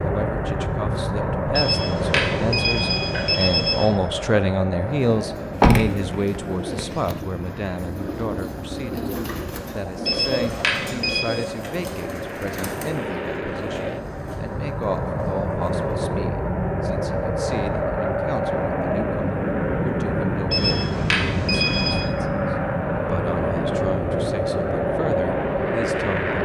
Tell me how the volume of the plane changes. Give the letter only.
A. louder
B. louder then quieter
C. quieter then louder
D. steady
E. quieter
C.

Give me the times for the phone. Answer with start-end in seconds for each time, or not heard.
1.6-3.9, 10.1-11.3, 20.5-22.1.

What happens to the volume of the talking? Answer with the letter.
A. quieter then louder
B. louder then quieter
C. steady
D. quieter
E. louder
D.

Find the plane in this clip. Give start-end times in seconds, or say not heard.
0.0-26.4.